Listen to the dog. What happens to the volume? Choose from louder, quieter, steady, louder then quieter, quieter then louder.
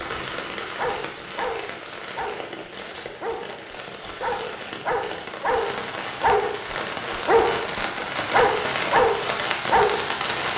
louder.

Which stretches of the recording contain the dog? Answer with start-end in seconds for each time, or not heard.
0.8-10.0.